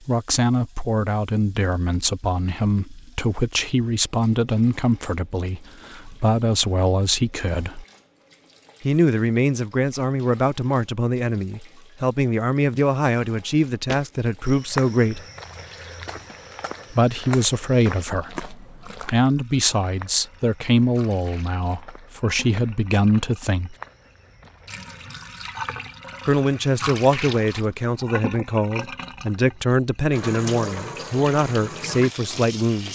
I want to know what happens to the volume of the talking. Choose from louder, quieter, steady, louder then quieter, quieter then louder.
steady.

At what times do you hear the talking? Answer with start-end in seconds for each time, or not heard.
0.1-7.8, 8.8-15.2, 16.9-23.8, 26.2-32.9.